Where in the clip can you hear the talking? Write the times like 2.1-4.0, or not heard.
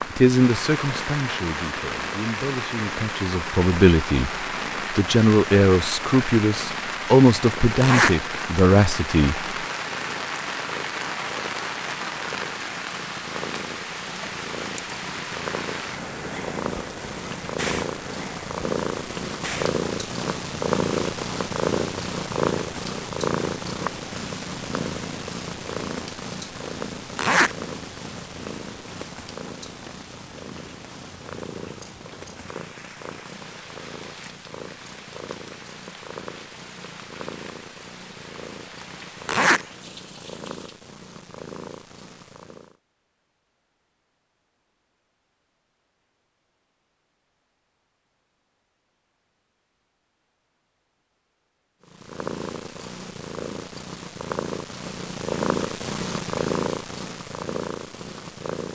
0.1-9.4.